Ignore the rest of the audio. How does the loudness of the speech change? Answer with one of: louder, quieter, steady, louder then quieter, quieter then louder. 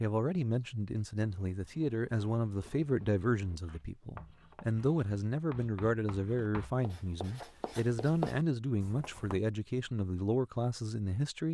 steady.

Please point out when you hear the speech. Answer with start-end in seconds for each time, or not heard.
0.0-11.4.